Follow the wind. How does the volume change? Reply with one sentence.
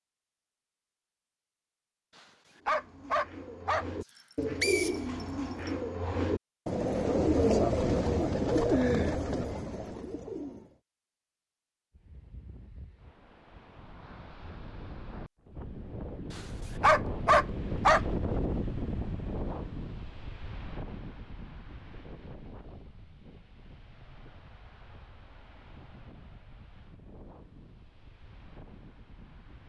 The loudness of the wind goes up, then down.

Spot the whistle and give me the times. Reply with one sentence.
The whistle can be heard from 4.0 to 5.7 s.